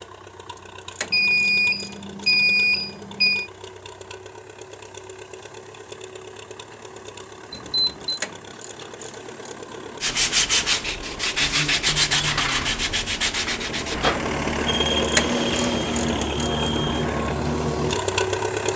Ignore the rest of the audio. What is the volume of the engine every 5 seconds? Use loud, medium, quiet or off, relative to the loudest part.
quiet, quiet, medium, loud.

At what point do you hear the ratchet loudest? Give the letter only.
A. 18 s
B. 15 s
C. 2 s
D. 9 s
B.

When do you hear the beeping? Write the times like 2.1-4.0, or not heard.
1.1-3.5, 7.5-8.2, 14.7-17.0.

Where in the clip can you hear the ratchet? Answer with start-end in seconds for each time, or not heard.
0.6-2.4, 8.0-9.6, 14.9-16.5.